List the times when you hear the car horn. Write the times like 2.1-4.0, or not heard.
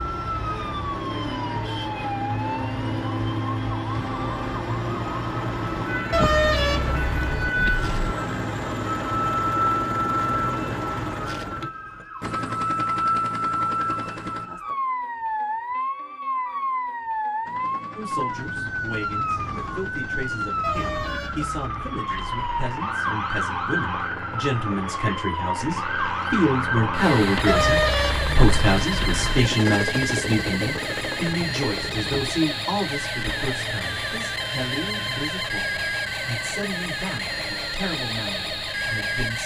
6.1-7.9, 20.6-22.4, 27.4-29.4.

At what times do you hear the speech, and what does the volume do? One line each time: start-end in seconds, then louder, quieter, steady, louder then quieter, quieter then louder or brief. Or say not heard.
17.9-39.4 louder then quieter.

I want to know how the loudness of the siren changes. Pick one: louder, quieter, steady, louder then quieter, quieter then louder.
steady.